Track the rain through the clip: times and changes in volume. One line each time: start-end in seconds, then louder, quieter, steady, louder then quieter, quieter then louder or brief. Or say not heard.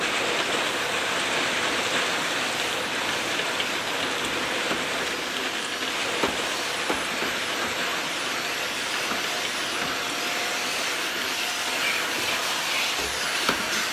0.0-13.8 quieter.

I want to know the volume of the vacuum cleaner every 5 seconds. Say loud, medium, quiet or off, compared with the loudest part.
medium, loud, loud.